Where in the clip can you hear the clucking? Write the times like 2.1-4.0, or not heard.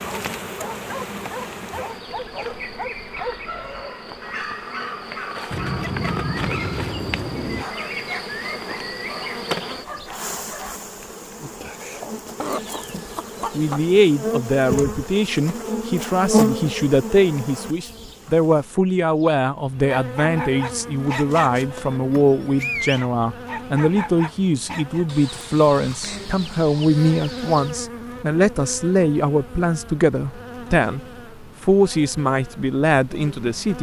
5.5-7.8, 12.3-13.8, 25.1-27.8.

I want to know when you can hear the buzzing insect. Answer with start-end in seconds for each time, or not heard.
0.0-33.7.